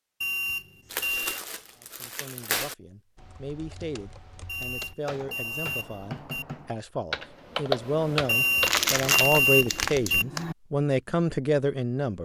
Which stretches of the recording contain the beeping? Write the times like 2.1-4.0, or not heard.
0.2-1.4, 4.5-6.5, 8.2-10.2.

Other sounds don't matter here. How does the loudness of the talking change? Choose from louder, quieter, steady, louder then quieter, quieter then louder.
louder.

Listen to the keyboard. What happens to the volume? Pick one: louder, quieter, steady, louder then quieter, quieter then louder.
louder.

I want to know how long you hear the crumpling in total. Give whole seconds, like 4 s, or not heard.
4 s.